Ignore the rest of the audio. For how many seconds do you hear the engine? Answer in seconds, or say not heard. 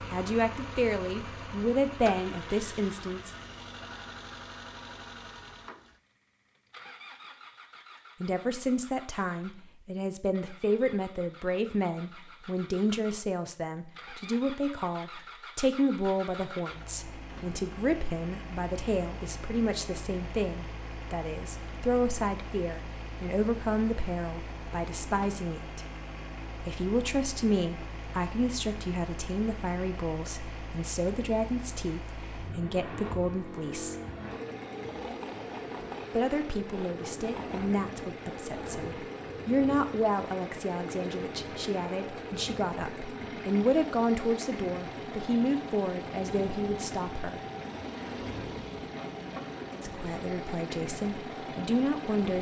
52 s.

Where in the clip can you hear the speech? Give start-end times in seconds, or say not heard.
0.1-3.3, 8.2-25.8, 26.6-34.0, 36.1-47.4, 49.8-52.3.